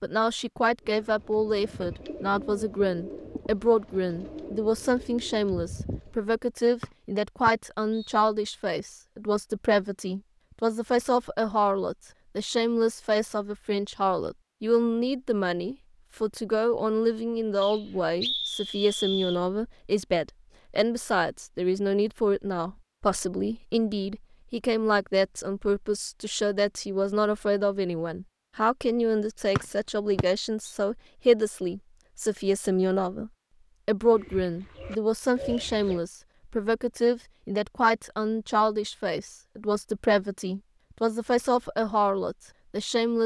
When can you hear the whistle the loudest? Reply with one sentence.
The loudest moment of the whistle is at 18 seconds.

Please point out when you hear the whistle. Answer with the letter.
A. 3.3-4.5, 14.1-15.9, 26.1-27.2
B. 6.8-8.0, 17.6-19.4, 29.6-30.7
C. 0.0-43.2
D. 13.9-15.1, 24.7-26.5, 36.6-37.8
B.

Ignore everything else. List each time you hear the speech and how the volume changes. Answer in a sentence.
The speech can be heard from 0.0 to 43.2 s, at a steady volume.